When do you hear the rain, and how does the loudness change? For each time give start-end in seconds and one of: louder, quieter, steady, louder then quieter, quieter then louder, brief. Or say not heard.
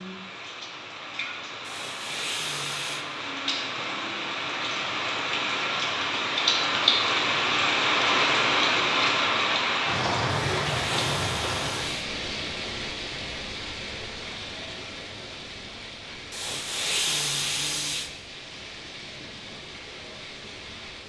0.0-21.0 louder then quieter.